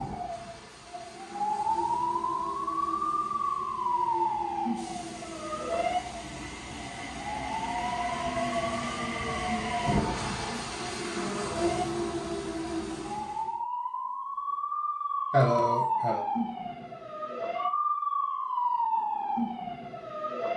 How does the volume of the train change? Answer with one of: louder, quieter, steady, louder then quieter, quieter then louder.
louder.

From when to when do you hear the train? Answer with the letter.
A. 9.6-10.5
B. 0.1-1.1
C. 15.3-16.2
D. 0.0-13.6
D.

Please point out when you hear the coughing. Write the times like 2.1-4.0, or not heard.
15.3-16.2.